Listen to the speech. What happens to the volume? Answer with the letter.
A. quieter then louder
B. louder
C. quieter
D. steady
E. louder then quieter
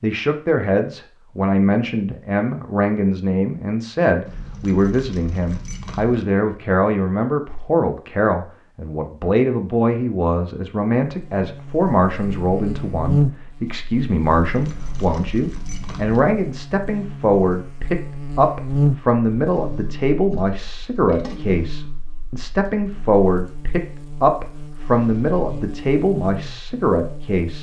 D.